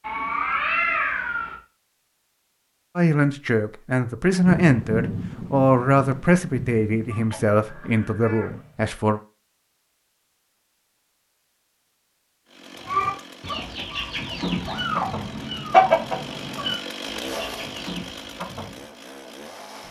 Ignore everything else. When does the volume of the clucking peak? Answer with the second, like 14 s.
16 s.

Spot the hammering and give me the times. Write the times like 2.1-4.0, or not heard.
not heard.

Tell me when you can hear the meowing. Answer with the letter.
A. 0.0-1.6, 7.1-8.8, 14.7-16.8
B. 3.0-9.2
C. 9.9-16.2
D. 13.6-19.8
A.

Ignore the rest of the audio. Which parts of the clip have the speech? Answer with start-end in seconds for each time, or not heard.
3.0-9.2.